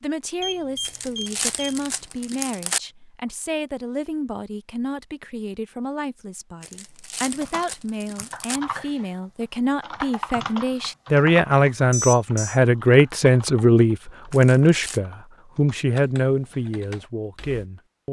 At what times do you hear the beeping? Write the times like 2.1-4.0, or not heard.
0.4-1.9, 11.9-12.6.